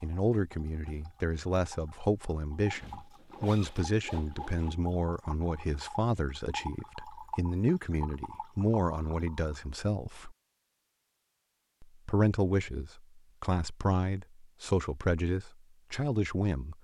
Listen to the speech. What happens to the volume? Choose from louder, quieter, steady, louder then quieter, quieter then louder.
steady.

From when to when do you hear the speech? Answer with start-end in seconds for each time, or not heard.
0.0-10.3, 11.8-16.7.